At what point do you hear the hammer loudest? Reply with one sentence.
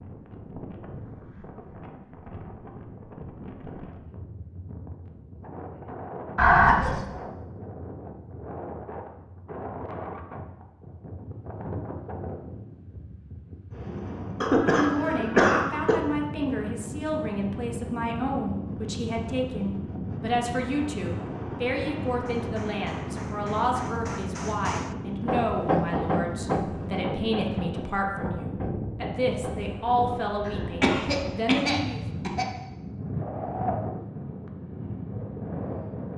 The volume of the hammer peaks at 26 seconds.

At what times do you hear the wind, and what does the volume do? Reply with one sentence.
The wind can be heard from 0.0 to 36.1 s, getting louder.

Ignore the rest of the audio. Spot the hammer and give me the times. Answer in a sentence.
You can hear the hammer from 22.1 to 29.8 s.